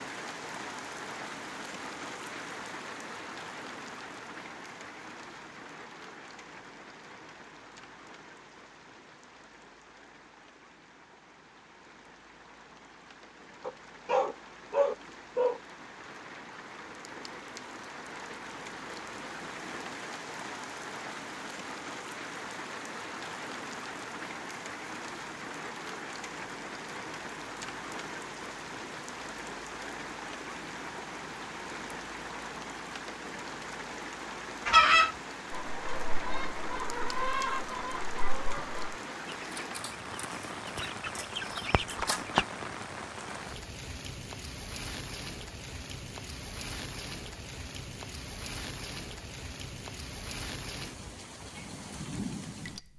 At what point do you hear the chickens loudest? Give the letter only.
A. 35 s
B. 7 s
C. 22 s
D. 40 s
A.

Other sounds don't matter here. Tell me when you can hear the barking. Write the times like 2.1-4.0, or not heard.
13.6-15.6.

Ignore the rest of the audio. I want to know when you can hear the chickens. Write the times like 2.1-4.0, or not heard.
34.6-42.5.